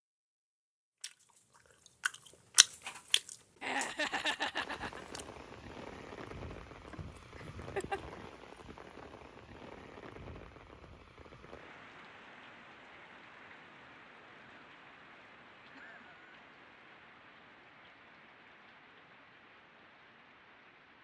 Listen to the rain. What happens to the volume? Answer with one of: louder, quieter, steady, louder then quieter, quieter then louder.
quieter.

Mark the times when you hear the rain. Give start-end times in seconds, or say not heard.
4.6-21.0.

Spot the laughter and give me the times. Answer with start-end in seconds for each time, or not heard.
3.6-5.0, 7.3-8.0, 15.7-16.4.